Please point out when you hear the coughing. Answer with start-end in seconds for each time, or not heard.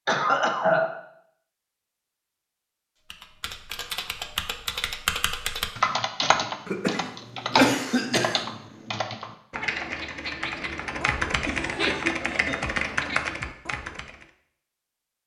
0.1-0.9, 6.7-8.4, 11.4-12.7.